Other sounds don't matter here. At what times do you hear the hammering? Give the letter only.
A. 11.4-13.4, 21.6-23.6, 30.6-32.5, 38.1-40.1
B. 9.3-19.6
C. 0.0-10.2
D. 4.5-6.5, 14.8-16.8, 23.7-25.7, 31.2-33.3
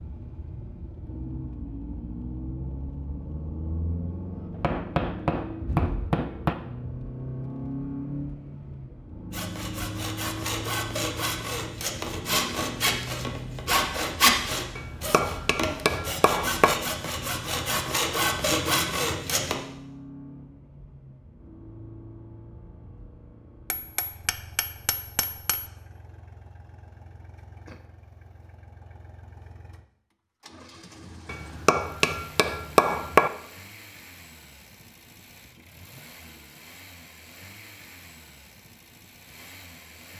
D.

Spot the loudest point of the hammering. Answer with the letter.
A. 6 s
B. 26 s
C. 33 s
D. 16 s
C.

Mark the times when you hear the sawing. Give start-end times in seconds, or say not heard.
9.3-19.6.